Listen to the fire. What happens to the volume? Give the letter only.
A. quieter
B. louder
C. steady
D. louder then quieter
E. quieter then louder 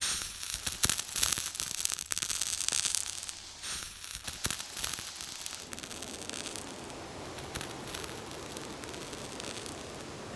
A.